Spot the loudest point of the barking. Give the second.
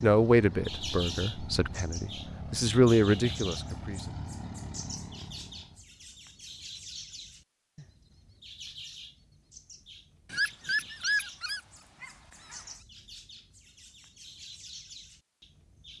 11 s.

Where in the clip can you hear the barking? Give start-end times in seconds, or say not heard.
10.3-12.7.